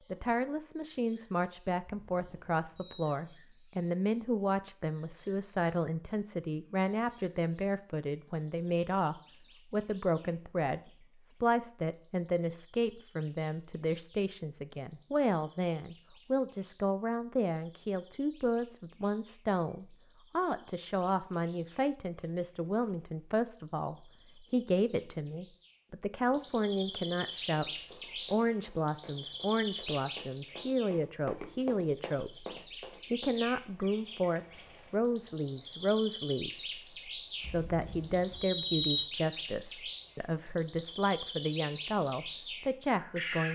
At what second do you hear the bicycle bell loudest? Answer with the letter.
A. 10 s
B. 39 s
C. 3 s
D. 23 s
B.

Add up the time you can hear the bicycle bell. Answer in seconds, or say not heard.
3 s.